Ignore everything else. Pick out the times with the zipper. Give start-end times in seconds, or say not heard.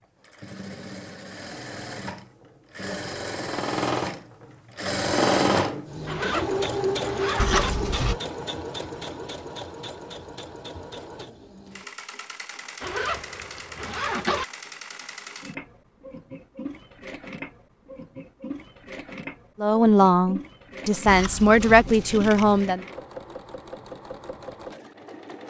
6.0-7.7, 12.8-14.4.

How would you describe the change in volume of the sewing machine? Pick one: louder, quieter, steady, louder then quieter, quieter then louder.
quieter.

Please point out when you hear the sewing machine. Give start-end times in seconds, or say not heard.
0.0-25.4.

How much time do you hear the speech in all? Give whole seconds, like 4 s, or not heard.
3 s.